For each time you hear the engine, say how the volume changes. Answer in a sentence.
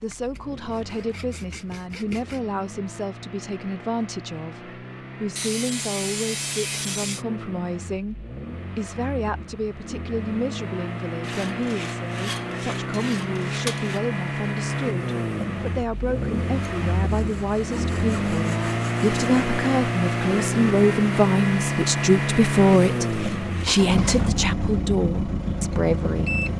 You can hear the engine from 0.0 to 26.5 s, getting louder.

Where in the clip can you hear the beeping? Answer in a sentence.
You can't hear the beeping here.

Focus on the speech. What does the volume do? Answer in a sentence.
The loudness of the speech goes up.